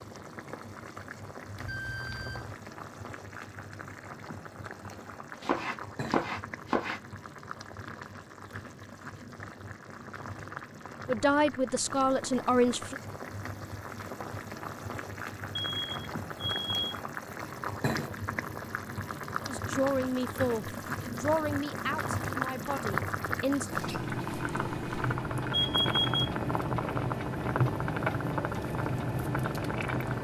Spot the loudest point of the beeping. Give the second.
26 s.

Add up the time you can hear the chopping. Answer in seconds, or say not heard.
2 s.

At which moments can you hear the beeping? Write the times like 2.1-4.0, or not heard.
1.6-2.5, 15.6-17.0, 23.7-26.3.